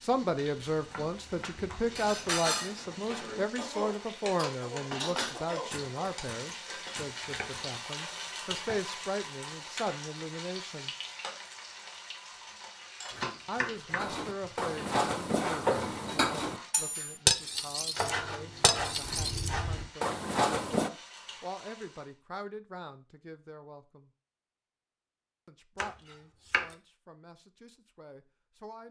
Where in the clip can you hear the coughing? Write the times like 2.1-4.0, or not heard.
3.5-5.9.